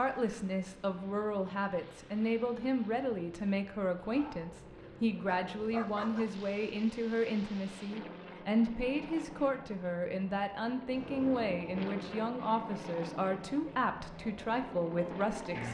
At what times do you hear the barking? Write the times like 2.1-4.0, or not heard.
4.1-4.5, 5.2-6.2.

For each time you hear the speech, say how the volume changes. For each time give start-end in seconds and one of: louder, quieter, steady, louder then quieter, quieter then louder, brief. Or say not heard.
0.0-15.6 steady.